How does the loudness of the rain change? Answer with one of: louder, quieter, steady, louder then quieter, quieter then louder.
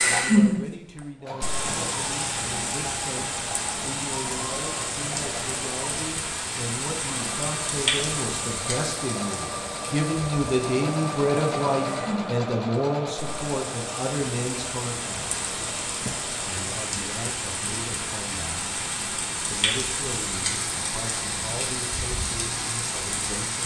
quieter then louder.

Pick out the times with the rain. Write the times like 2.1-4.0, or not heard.
0.0-23.6.